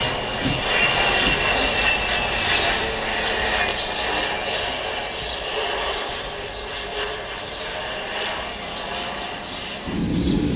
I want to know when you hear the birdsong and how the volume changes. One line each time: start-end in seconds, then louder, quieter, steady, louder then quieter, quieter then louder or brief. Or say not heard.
0.0-10.5 quieter.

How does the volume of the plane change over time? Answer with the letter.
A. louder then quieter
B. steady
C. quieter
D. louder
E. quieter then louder
C.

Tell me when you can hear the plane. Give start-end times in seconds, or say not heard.
0.0-10.5.